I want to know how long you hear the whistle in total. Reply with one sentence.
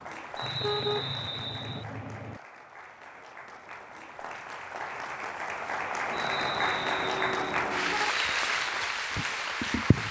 You can hear the whistle for 3 seconds altogether.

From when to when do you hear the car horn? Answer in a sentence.
The car horn can be heard from 0.4 to 2.4 s and from 6.1 to 8.1 s.